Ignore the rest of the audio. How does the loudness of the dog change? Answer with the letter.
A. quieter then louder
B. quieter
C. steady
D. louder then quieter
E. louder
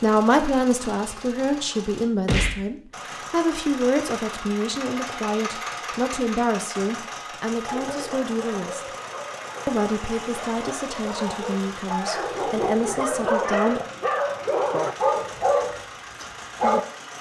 E.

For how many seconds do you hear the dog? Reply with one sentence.
The dog can be heard for 9 seconds in total.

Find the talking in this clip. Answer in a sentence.
You can hear the talking from 0.0 to 8.9 s and from 9.7 to 13.8 s.